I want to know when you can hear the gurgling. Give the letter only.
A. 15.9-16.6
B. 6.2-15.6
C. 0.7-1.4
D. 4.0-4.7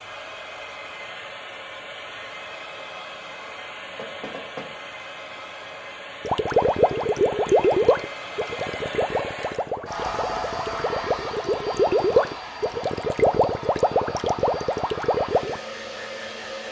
B.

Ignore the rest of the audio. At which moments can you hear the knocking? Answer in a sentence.
You can hear the knocking from 4.0 to 4.7 s.